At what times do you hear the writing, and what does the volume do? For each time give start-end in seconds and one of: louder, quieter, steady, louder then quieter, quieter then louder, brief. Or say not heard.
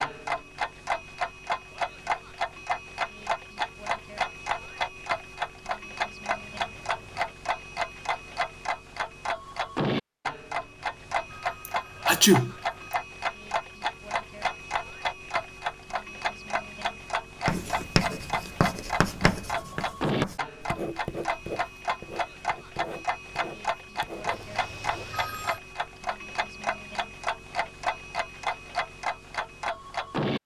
17.4-25.2 quieter.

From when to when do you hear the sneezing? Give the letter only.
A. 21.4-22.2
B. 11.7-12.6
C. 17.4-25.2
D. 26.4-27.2
B.